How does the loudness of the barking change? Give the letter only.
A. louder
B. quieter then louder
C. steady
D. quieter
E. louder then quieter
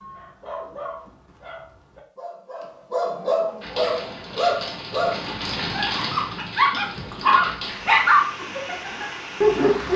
A.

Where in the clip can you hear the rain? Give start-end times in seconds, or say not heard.
3.6-9.9.